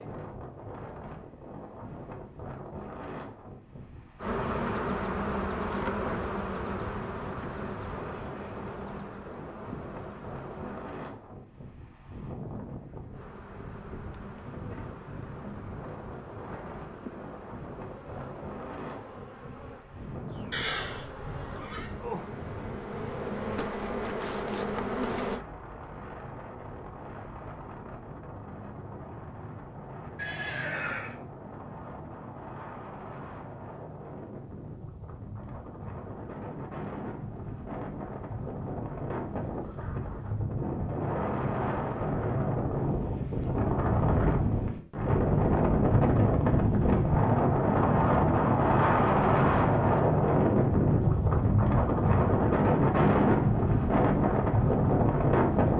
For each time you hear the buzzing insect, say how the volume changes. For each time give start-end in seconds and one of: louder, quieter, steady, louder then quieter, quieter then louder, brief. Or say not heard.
4.2-10.9 quieter
13.1-25.4 louder.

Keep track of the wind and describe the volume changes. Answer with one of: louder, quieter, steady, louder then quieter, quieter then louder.
louder.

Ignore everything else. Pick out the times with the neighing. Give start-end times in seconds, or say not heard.
20.5-21.9, 30.1-31.1.